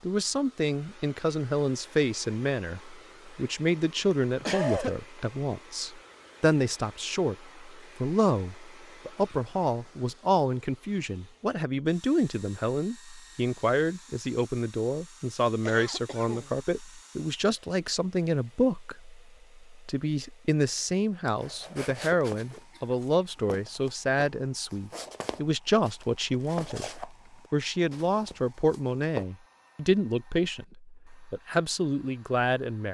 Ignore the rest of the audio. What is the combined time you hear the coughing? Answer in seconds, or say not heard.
3 s.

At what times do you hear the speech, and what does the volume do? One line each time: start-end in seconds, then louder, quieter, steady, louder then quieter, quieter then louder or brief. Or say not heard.
0.0-32.8 steady.